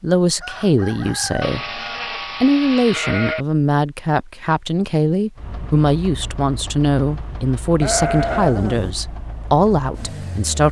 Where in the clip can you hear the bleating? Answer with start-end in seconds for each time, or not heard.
1.4-3.5, 7.8-8.9.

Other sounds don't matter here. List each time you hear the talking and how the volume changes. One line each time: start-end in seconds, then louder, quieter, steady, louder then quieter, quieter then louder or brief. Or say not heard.
0.0-1.8 brief
2.4-10.6 steady.